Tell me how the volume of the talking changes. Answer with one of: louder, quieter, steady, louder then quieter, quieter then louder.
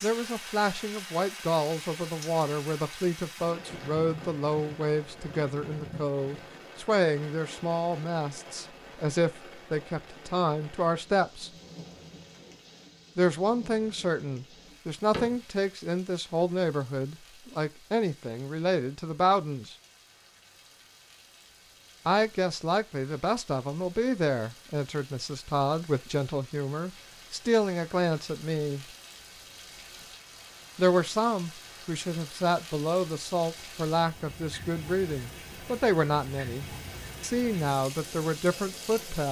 steady.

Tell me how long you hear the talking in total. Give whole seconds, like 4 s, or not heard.
33 s.